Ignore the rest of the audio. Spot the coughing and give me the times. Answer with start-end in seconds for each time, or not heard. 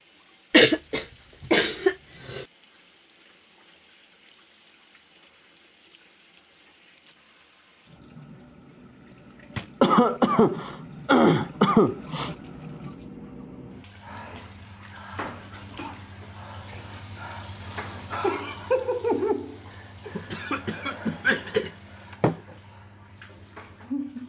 0.5-2.5, 9.8-12.3, 20.1-22.4.